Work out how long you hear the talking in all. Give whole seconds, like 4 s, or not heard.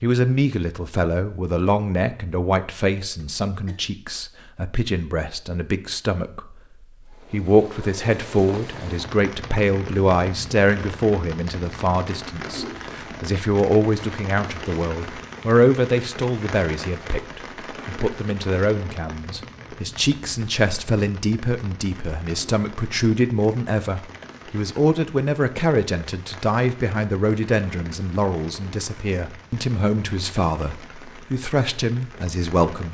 33 s.